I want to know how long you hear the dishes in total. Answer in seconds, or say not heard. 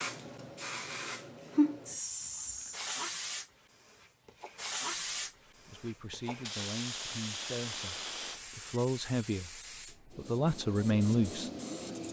not heard.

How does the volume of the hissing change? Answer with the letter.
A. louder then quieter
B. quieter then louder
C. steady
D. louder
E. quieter
E.